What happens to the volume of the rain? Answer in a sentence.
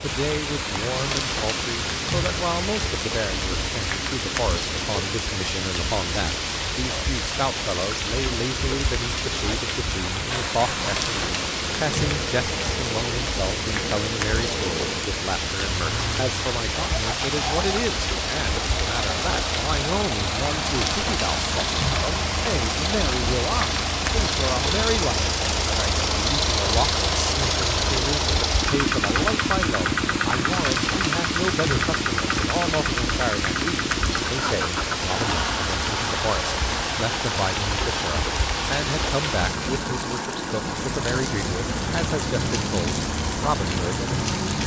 The volume of the rain stays about the same.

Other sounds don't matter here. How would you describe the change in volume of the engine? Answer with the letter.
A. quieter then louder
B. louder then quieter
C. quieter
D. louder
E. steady
B.